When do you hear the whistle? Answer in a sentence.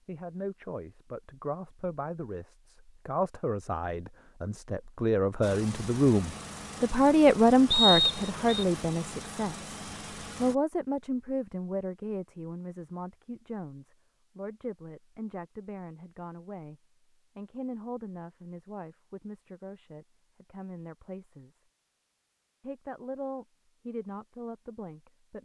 You can hear the whistle from 7.7 to 8.7 s.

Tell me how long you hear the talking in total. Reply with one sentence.
You can hear the talking for 24 seconds altogether.